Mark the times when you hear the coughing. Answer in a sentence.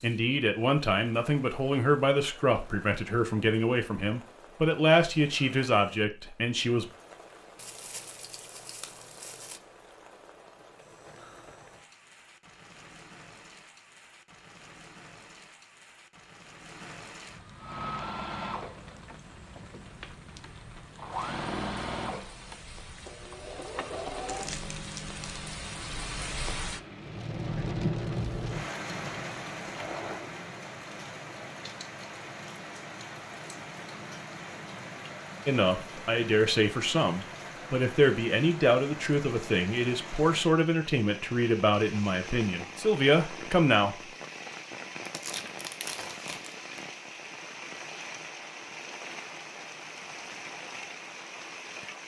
You can't hear the coughing here.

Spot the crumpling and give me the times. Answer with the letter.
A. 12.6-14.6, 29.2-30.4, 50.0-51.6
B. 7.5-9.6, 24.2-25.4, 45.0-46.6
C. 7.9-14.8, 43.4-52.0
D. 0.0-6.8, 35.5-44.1
B.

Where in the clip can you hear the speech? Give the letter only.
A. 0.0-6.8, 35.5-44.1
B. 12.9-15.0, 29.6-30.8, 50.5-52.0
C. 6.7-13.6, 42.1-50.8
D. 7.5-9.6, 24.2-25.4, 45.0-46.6
A.